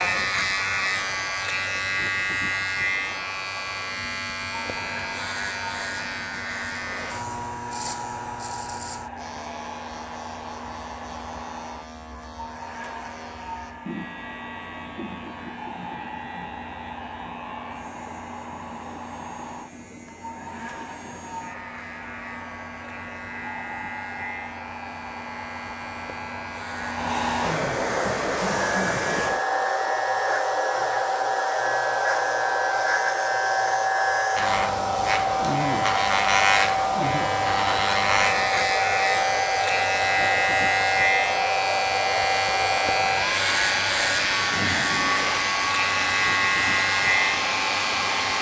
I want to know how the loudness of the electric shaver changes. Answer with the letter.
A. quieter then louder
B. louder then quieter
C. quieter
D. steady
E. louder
A.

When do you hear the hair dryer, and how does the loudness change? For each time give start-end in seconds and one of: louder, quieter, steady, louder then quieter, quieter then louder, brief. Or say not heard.
0.2-48.3 louder.